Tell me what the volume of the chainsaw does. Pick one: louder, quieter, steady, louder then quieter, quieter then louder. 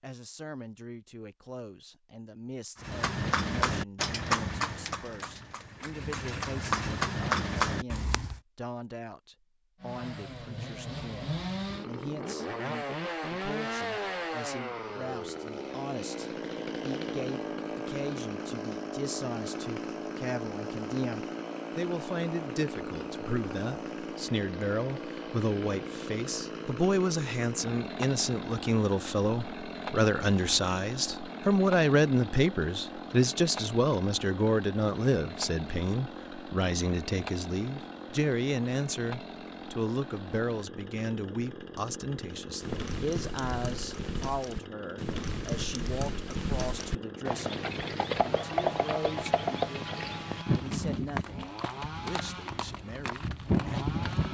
quieter.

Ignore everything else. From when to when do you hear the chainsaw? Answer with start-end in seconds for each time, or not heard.
9.8-54.2.